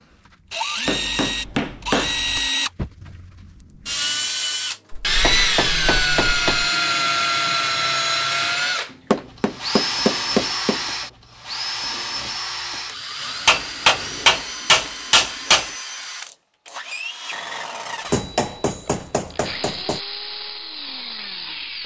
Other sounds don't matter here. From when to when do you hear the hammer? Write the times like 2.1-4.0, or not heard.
0.8-2.5, 5.0-6.7, 8.9-10.8, 13.4-15.8, 18.1-20.0.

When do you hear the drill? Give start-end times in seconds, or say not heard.
0.1-21.8.